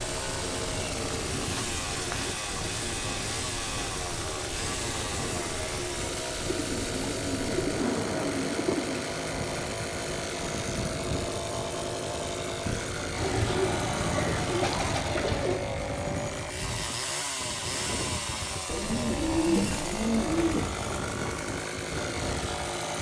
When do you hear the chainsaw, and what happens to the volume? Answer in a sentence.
The chainsaw can be heard from 0.0 to 22.9 s, at a steady volume.